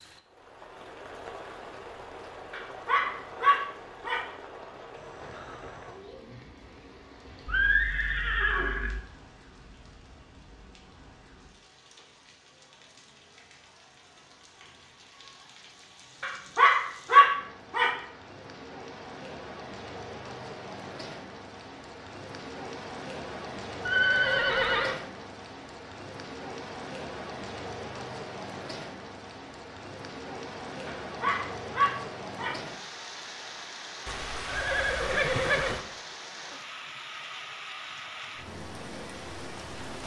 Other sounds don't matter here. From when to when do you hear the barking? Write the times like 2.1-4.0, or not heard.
2.5-4.2, 16.2-17.9, 30.9-32.5.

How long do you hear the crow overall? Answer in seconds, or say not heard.
not heard.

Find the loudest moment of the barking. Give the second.
17 s.